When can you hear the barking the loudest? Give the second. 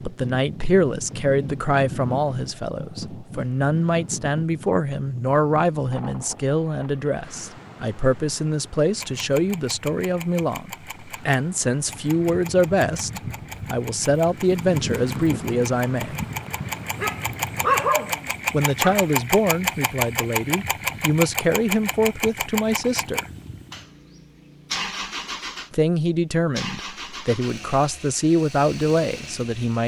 18 s.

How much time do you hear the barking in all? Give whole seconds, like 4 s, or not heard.
2 s.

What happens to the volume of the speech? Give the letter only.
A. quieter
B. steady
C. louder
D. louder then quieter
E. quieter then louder
B.